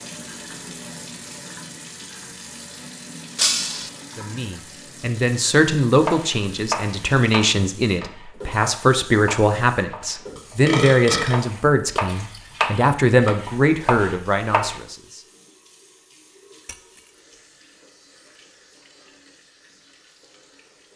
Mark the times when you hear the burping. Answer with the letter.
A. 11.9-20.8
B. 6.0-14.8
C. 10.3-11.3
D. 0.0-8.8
C.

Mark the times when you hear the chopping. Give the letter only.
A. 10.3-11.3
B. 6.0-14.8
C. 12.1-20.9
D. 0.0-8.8
B.